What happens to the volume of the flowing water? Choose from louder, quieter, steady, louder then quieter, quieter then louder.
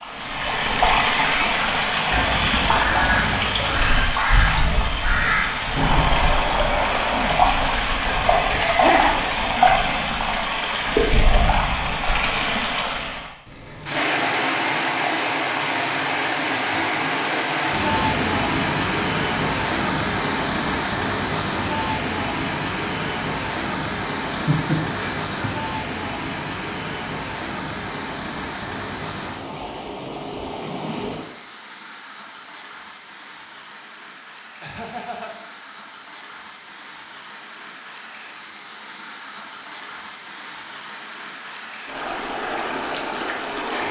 quieter.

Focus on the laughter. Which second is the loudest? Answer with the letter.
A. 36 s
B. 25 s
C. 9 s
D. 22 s
C.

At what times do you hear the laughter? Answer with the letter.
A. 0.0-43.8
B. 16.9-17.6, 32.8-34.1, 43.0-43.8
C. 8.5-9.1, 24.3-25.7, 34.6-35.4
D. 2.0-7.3
C.